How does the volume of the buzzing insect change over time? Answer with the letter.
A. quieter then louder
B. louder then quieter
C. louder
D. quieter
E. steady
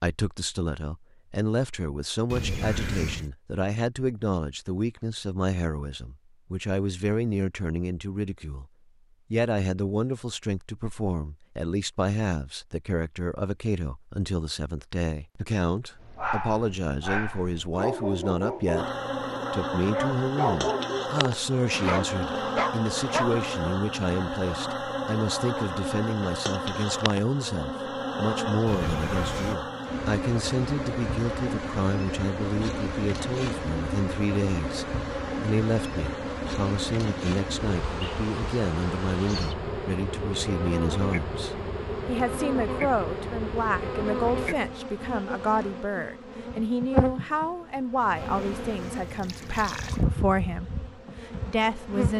E.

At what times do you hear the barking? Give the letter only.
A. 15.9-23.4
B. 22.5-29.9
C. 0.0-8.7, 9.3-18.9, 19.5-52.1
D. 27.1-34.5
A.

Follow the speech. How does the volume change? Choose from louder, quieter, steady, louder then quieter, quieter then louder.
steady.